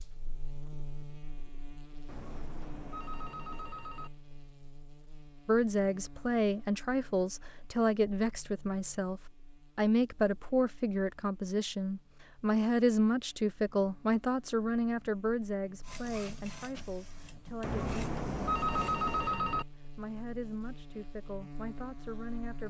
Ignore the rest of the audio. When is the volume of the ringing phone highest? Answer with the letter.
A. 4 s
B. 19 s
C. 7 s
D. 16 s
B.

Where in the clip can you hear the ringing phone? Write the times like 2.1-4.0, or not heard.
2.0-4.1, 17.6-19.6.